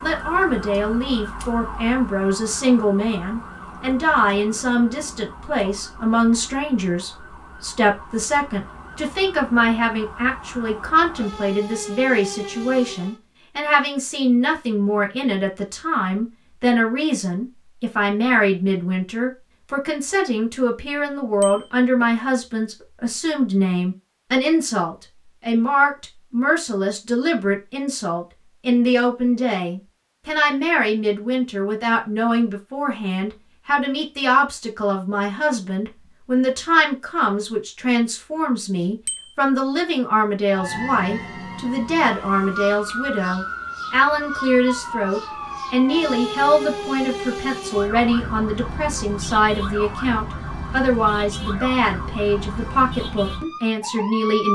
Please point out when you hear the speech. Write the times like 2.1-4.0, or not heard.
0.0-54.4.